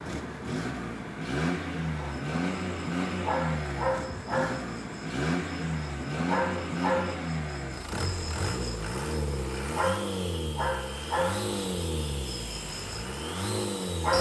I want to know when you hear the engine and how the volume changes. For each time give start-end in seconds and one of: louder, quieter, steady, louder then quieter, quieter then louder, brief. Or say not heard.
0.0-14.1 steady.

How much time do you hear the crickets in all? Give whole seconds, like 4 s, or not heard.
12 s.